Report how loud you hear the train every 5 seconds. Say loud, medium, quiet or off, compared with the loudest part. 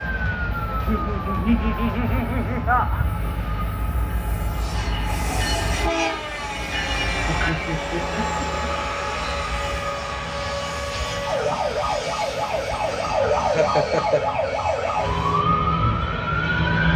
medium, loud, medium, medium.